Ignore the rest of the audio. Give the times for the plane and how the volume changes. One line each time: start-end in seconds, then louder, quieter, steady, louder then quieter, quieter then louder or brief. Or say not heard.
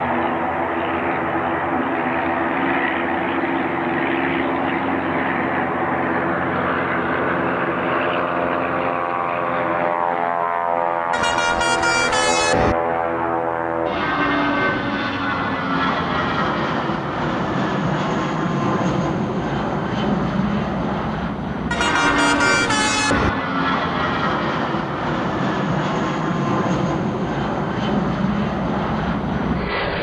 0.0-29.9 steady.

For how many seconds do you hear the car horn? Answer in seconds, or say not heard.
3 s.